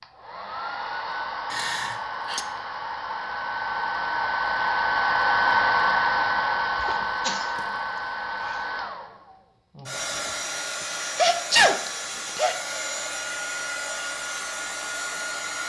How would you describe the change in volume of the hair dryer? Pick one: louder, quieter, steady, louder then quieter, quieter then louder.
louder then quieter.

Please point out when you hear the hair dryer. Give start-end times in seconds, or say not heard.
0.0-15.6.